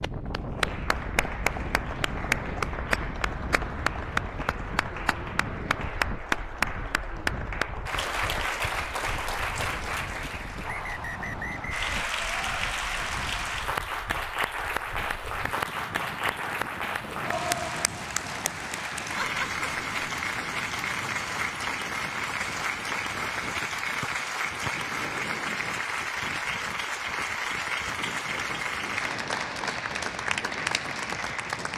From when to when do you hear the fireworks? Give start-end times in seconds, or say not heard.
not heard.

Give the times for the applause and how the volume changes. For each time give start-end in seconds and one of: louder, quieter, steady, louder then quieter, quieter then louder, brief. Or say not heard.
0.0-31.7 steady.